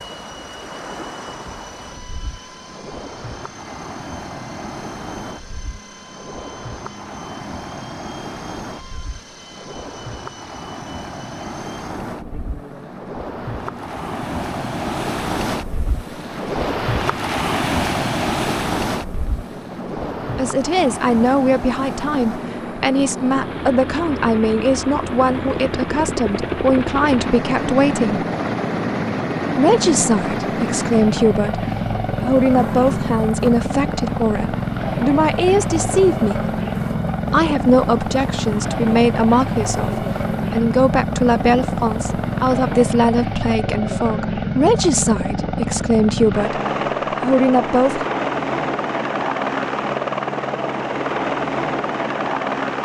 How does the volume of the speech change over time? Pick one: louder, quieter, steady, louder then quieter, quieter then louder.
steady.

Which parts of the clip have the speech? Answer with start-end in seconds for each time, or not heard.
20.4-28.2, 29.6-36.5, 37.3-48.0.